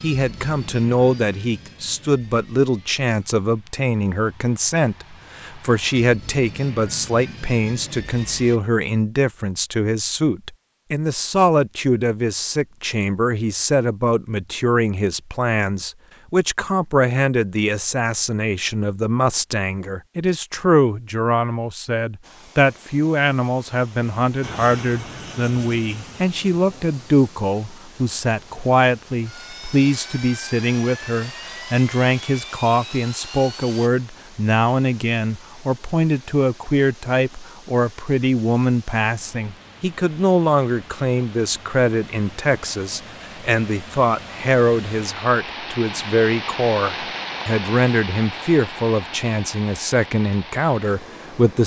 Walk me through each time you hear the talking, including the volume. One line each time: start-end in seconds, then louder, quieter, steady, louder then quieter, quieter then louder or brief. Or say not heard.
0.0-51.6 steady.